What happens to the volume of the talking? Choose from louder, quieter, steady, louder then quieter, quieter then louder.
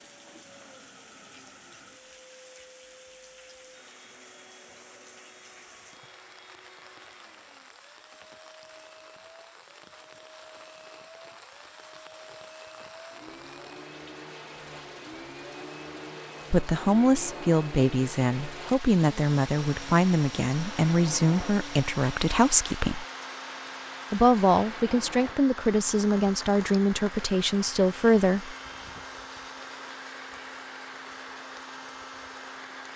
steady.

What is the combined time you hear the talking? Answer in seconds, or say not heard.
11 s.